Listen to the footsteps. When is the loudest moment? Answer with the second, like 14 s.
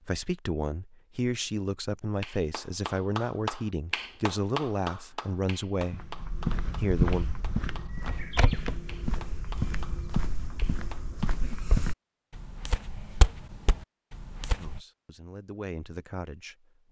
7 s.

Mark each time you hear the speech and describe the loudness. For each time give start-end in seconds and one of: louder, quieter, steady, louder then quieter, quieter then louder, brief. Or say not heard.
0.1-6.2 steady
6.8-7.2 brief
14.6-16.8 brief.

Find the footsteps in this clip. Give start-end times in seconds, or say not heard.
5.8-14.8.